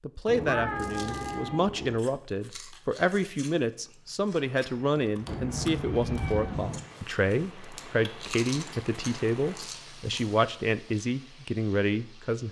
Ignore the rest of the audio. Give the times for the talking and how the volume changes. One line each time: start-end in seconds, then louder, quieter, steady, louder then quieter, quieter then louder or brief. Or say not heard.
0.0-12.4 steady.